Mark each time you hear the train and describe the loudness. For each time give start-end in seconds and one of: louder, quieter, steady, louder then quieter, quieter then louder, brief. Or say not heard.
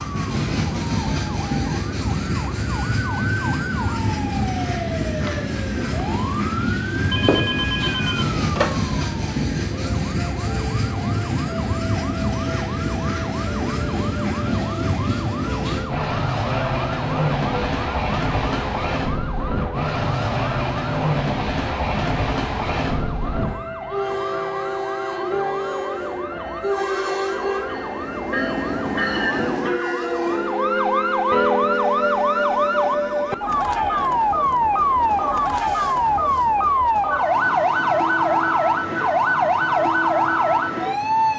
0.0-41.3 quieter.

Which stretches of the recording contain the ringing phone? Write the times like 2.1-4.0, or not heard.
7.1-8.8.